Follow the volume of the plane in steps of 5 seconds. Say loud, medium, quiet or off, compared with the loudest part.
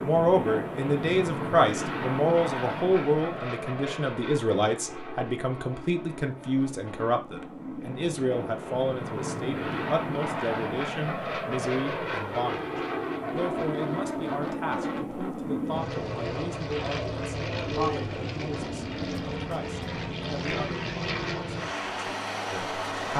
loud, medium, loud, loud, loud.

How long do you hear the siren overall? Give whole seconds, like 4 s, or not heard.
not heard.